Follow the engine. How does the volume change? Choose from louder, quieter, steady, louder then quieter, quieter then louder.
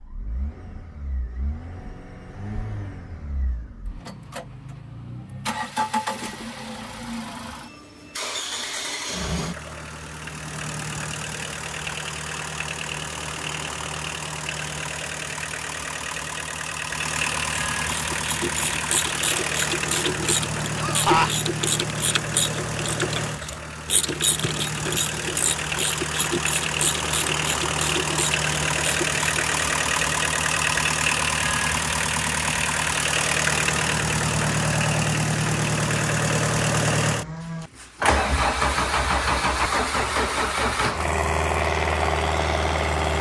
louder.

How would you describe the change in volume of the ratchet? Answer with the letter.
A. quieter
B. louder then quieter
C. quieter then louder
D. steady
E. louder
D.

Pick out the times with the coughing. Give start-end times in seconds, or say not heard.
20.8-21.4.